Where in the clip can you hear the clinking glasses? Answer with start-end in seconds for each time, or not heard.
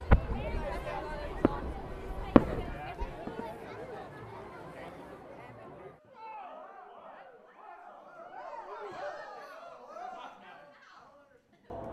not heard.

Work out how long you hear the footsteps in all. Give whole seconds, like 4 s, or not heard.
not heard.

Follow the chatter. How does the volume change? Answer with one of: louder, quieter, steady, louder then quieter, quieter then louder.
quieter.